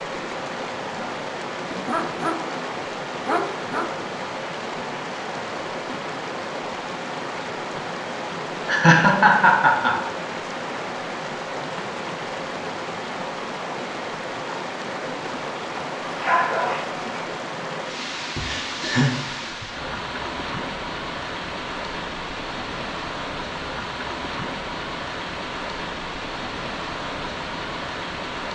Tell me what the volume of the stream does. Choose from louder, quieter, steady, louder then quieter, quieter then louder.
steady.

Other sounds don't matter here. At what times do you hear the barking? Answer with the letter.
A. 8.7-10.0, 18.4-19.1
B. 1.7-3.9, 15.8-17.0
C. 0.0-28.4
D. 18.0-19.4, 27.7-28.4
B.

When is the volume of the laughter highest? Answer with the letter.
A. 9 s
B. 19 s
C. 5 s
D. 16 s
A.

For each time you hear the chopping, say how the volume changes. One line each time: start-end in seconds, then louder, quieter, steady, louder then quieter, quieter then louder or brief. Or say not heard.
not heard.